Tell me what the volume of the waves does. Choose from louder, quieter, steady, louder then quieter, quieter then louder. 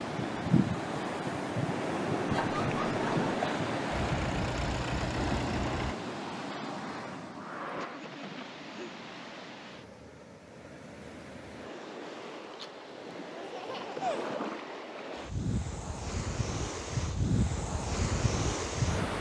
quieter then louder.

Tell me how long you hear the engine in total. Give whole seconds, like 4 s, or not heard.
2 s.